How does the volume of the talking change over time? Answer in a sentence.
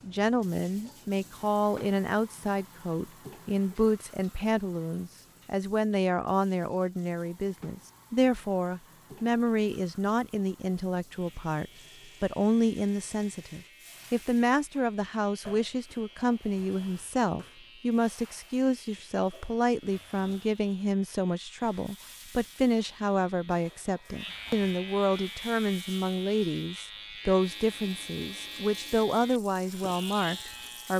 The volume of the talking stays about the same.